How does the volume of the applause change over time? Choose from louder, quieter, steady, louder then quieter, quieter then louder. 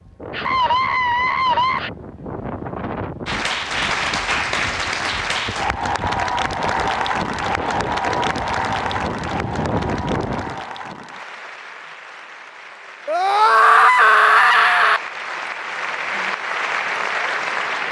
quieter then louder.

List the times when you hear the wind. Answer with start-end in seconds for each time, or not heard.
0.0-10.7.